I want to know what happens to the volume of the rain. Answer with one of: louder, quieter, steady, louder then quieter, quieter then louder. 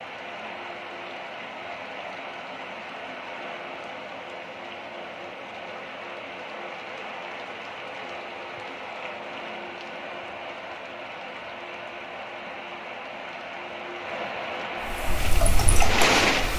louder.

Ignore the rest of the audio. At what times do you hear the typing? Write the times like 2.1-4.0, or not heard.
14.9-16.5.